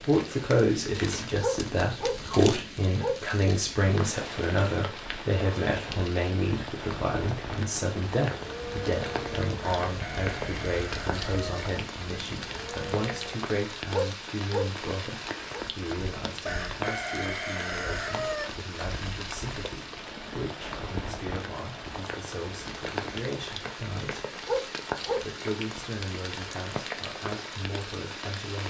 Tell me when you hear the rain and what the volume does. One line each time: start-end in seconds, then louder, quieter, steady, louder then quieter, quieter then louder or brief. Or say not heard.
0.0-28.6 steady.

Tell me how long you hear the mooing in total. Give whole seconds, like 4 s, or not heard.
5 s.